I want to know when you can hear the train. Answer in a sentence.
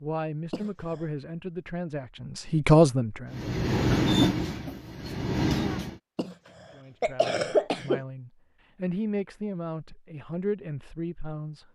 The train can be heard from 3.3 to 6.0 s.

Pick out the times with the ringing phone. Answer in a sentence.
You can't hear the ringing phone here.